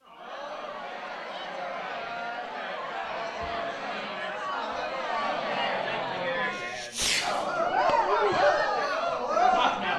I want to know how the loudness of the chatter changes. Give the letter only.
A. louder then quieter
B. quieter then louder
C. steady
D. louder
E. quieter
D.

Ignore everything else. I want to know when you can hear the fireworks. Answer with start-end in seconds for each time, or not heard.
6.5-8.0.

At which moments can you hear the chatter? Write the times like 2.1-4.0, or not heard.
0.0-9.9.